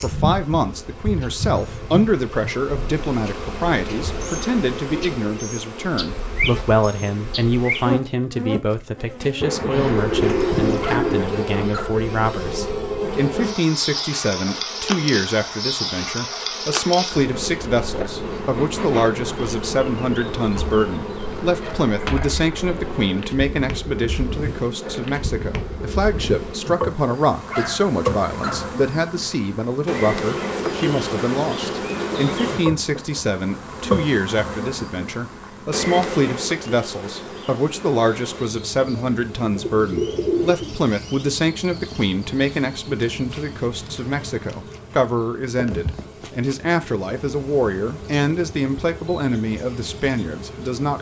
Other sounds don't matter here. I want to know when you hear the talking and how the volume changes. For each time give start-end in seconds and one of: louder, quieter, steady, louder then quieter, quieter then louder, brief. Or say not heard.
0.0-50.9 steady.